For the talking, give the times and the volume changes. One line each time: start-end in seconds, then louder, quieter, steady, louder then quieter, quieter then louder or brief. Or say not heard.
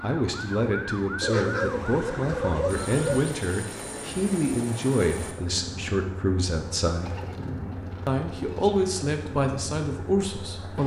0.0-7.2 steady
8.1-10.8 brief.